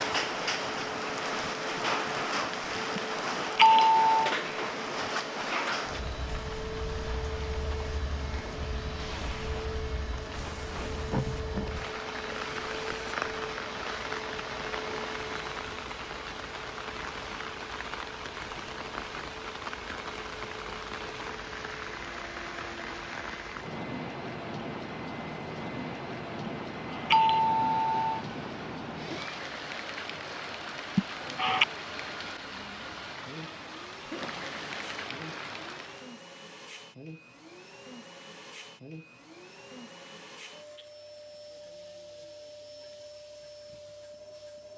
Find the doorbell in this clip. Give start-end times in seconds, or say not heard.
3.0-4.3, 26.4-28.2, 30.9-31.6.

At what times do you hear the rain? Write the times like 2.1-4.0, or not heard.
0.0-36.1.